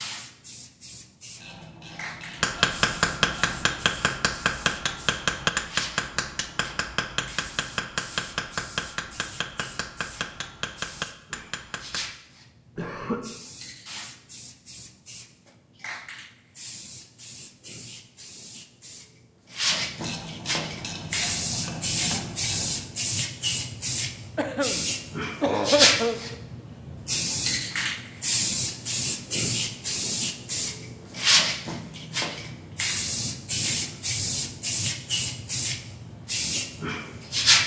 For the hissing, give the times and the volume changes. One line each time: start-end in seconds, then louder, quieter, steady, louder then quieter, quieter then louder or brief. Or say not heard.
0.0-37.6 louder.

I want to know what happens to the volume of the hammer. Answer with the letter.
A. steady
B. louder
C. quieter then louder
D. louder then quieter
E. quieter
E.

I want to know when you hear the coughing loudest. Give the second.
26 s.